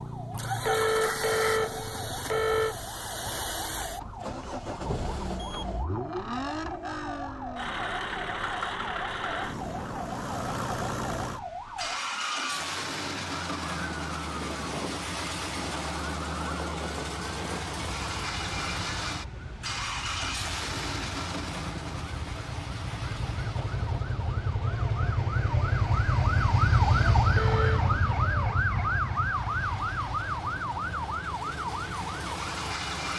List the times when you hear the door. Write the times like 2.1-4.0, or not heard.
not heard.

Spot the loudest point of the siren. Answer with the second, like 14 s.
27 s.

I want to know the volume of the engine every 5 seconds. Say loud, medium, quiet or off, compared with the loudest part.
loud, loud, loud, loud, loud, quiet, loud.